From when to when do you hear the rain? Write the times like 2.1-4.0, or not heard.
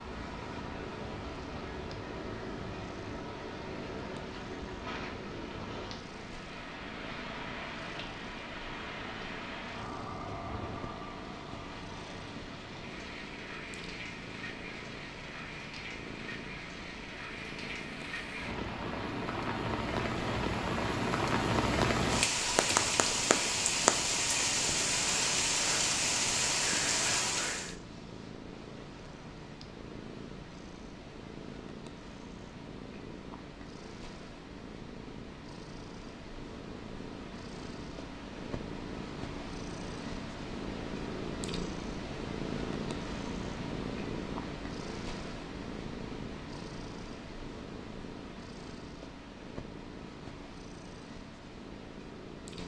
0.0-27.8.